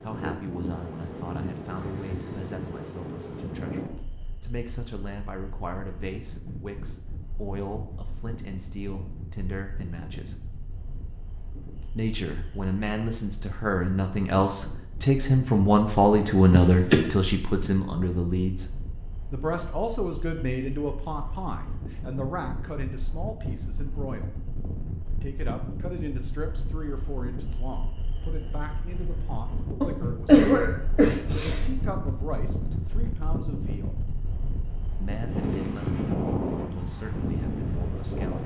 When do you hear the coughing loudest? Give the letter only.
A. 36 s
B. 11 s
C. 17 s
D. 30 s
D.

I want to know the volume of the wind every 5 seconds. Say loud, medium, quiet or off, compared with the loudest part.
medium, quiet, quiet, quiet, medium, medium, medium, loud.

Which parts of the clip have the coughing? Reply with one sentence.
You can hear the coughing from 16.5 to 17.1 s and from 29.8 to 31.6 s.